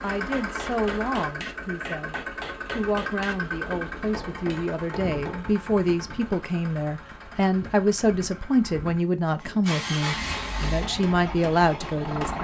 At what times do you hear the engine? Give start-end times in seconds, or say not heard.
0.0-12.3.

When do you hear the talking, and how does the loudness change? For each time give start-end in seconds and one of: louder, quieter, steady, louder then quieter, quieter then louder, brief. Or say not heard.
0.0-12.3 louder.